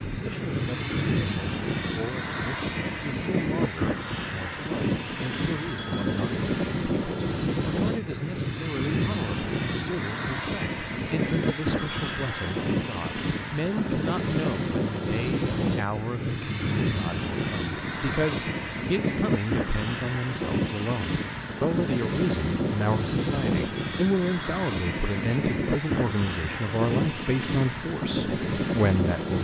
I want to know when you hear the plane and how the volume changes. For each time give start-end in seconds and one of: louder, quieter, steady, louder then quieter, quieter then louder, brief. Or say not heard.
0.0-29.3 steady.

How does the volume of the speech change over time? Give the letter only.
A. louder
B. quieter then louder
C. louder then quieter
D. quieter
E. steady
A.